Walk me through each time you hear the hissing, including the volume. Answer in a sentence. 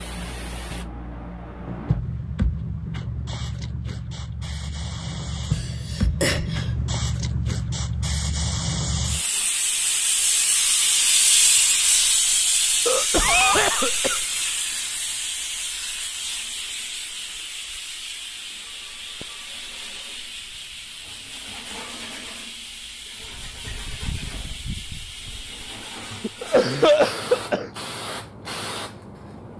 The hissing can be heard from 0.0 to 29.5 s, getting louder then quieter.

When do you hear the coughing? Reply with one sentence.
The coughing can be heard from 5.5 to 6.7 s, from 12.8 to 14.2 s and from 26.2 to 27.7 s.